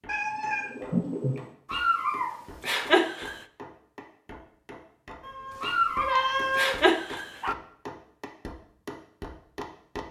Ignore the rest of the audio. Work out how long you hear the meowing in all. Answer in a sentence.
The meowing can be heard for 3 seconds in total.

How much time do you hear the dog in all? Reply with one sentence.
You can hear the dog for 4 seconds altogether.